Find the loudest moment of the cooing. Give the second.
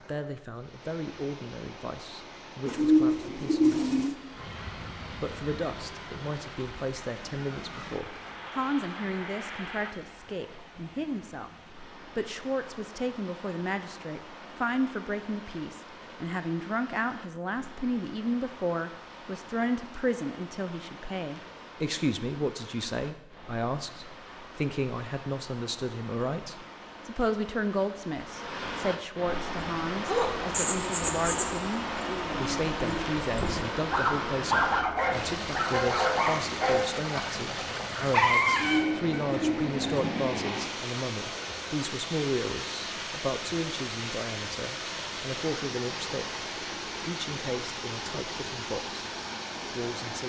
3 s.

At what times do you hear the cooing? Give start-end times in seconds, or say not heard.
2.6-4.2, 38.5-40.3.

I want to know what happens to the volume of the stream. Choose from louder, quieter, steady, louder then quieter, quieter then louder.
louder.